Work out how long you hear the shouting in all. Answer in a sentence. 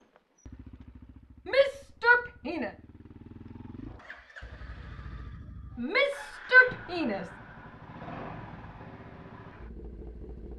The shouting can be heard for 3 seconds in total.